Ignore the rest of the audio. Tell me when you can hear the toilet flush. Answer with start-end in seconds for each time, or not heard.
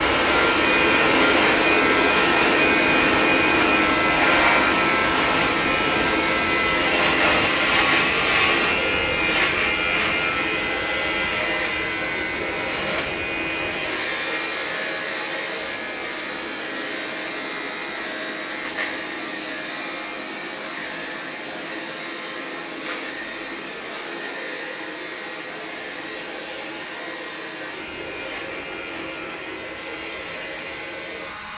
not heard.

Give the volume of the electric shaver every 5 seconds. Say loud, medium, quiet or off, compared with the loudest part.
loud, loud, medium, medium, quiet, quiet, quiet.